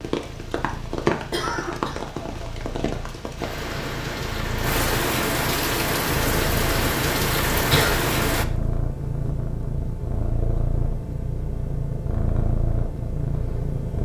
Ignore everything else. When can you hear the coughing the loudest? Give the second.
8 s.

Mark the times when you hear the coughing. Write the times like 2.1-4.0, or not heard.
1.3-2.0, 7.5-8.1.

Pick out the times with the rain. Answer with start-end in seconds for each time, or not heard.
0.0-8.4.